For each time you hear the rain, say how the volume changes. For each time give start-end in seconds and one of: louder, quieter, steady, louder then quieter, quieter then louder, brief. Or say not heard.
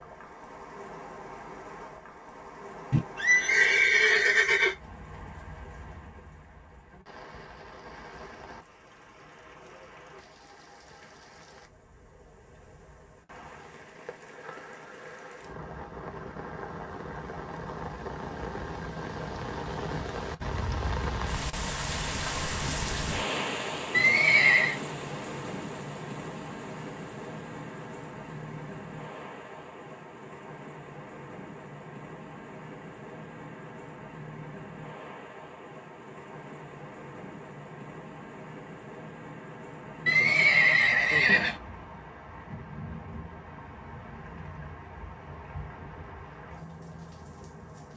0.0-47.9 louder then quieter.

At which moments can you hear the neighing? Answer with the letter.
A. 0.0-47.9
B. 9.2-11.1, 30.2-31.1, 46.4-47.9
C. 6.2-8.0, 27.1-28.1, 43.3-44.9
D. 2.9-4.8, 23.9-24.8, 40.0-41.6
D.